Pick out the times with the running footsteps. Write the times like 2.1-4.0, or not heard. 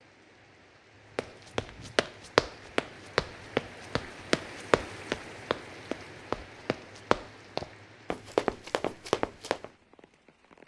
1.1-9.7.